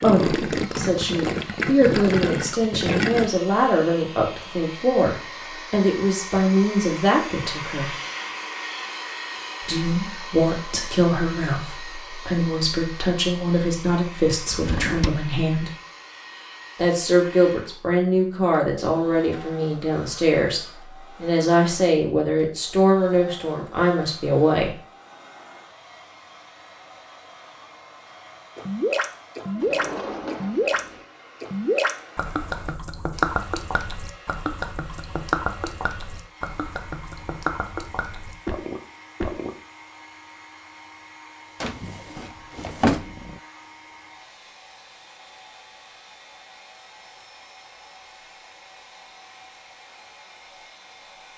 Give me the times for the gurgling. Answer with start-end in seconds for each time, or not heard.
0.0-3.3, 28.6-39.5.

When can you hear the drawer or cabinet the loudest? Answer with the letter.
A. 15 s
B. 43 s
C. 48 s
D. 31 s
B.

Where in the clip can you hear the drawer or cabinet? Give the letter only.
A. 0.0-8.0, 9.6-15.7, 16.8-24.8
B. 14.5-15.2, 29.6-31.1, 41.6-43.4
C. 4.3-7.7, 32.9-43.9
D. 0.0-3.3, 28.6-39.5
B.